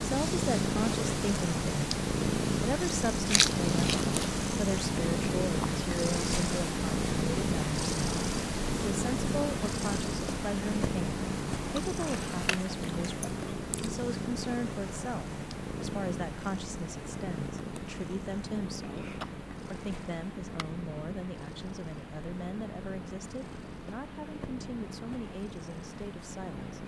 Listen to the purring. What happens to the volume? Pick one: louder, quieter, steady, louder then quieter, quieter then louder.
quieter.